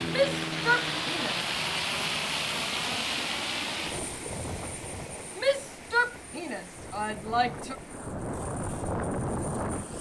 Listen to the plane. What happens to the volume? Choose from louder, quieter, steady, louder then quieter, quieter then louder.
quieter then louder.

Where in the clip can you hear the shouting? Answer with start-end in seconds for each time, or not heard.
0.1-1.4, 5.3-7.8.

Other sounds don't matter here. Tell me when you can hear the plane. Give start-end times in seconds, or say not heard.
0.0-9.9.